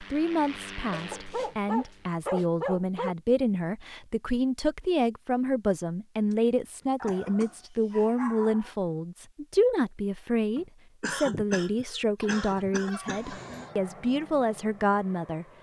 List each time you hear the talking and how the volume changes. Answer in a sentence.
The talking can be heard from 0.0 to 15.4 s, at a steady volume.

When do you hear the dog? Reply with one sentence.
You can hear the dog from 1.1 to 3.1 s, from 7.0 to 8.8 s and from 12.2 to 13.8 s.